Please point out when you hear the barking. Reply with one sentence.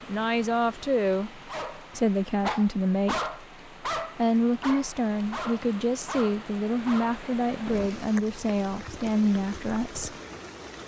You can hear the barking from 1.4 to 8.2 s.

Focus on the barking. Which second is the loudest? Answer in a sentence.
The volume of the barking peaks at 3 seconds.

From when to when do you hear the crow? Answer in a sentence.
The crow can't be heard in this clip.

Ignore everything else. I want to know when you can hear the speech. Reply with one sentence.
You can hear the speech from 0.1 to 3.3 s and from 4.2 to 10.2 s.